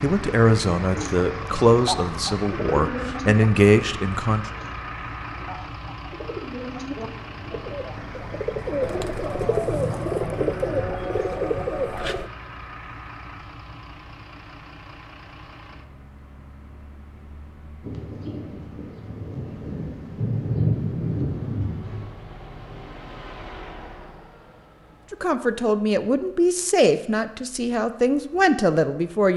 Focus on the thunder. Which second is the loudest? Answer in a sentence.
The volume of the thunder peaks at 21 seconds.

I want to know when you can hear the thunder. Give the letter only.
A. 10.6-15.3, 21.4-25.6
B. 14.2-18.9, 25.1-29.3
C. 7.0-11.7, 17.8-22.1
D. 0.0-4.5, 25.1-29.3
C.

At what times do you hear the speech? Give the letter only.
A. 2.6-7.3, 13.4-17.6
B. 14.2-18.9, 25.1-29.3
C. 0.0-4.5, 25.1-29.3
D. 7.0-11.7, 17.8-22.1
C.